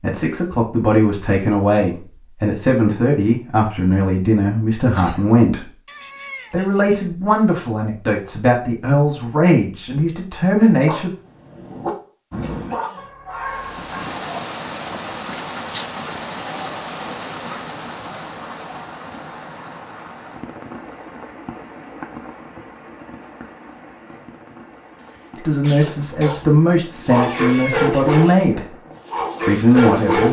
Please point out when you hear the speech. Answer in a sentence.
The speech can be heard from 0.0 to 5.8 s, from 6.5 to 11.1 s, from 25.4 to 28.8 s and from 29.4 to 30.2 s.